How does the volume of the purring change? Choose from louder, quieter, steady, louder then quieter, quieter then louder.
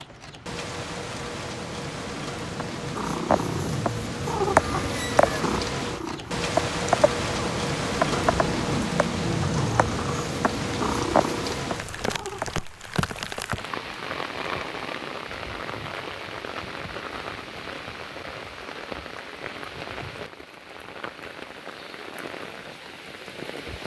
quieter then louder.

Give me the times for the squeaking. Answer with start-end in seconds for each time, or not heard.
4.6-5.5.